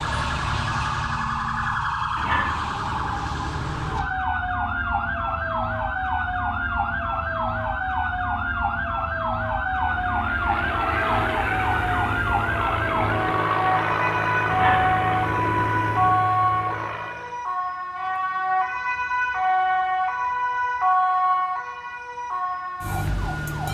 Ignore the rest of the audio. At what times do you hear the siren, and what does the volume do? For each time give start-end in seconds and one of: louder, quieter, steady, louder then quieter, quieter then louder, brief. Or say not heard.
0.0-23.6 steady.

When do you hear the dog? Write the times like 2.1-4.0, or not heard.
2.1-4.0, 14.5-16.2.